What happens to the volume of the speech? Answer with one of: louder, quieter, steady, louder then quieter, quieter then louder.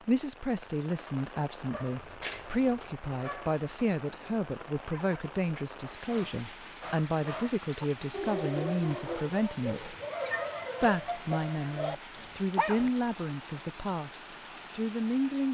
steady.